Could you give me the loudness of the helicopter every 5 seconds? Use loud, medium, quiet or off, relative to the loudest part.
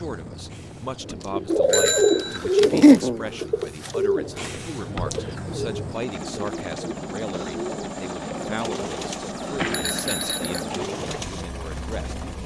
medium, loud, loud.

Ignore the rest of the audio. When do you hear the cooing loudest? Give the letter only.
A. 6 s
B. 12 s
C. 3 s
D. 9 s
C.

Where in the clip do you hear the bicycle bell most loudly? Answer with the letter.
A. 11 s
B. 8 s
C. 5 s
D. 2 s
D.